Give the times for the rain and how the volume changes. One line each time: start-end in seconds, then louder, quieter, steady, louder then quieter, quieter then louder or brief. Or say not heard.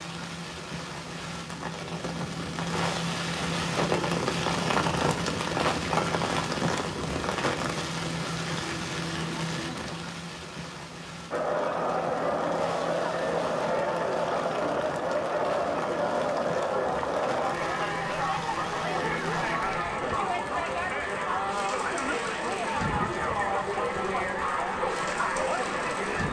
0.0-26.2 quieter.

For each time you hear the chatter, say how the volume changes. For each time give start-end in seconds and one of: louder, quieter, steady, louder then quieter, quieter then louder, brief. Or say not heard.
11.3-26.2 steady.